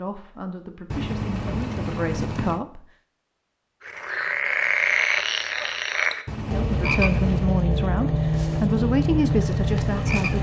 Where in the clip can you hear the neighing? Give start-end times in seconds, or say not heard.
0.9-2.6, 6.2-7.5.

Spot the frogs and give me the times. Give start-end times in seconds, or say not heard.
3.8-10.3.